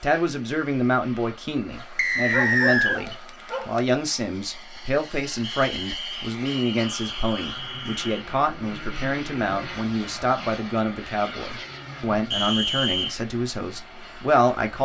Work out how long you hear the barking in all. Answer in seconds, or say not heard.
2 s.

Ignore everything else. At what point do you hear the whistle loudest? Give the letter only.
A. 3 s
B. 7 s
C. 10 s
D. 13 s
A.